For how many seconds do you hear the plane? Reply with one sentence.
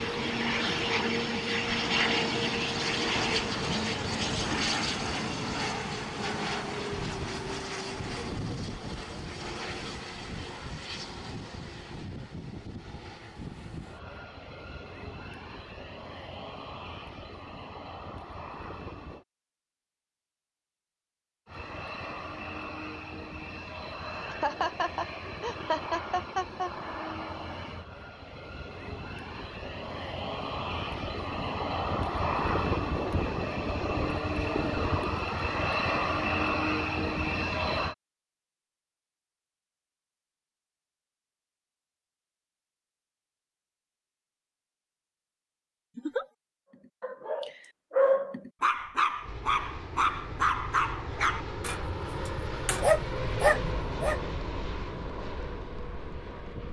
The plane can be heard for 43 seconds in total.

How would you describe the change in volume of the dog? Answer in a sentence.
The volume of the dog goes down, then up.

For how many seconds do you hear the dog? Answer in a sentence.
You can hear the dog for 7 seconds altogether.